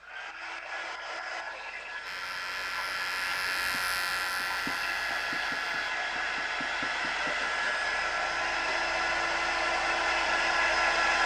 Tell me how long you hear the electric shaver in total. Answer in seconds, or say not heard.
4 s.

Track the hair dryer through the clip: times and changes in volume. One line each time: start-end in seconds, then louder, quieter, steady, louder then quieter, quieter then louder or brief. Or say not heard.
0.0-11.2 louder.